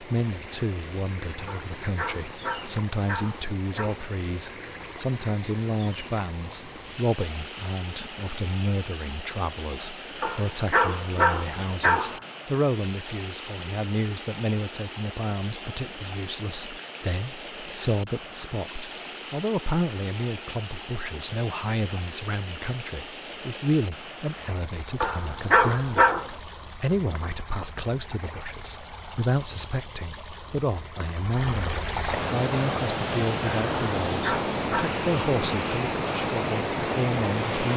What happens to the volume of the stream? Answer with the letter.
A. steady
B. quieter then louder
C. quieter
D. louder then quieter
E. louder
E.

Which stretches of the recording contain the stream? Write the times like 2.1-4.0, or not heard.
0.0-37.7.